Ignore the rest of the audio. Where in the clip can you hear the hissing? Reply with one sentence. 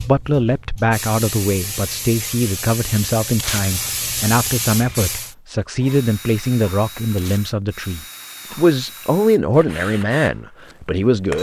You can hear the hissing from 0.0 to 5.3 s.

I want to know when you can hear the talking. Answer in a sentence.
You can hear the talking from 0.0 to 11.3 s.